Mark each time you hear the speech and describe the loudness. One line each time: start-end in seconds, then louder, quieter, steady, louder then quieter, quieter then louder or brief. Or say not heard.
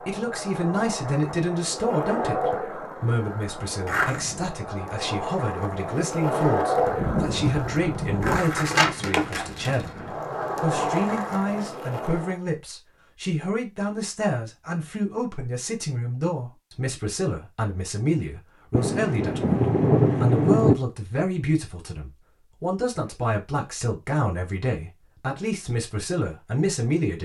0.1-27.1 steady.